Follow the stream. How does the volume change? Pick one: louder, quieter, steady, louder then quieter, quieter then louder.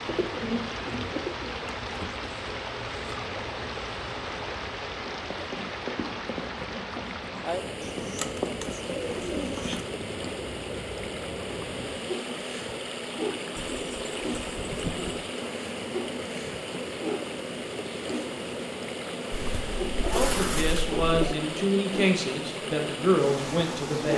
steady.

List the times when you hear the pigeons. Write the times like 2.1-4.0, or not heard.
0.1-1.8, 7.8-9.8, 13.6-15.2, 19.3-21.4.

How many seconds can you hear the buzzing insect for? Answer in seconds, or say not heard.
24 s.